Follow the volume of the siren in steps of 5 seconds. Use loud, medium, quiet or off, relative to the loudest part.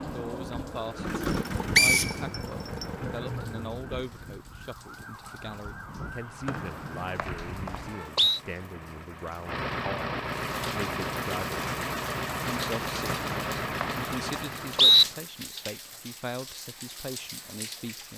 loud, loud, off, off.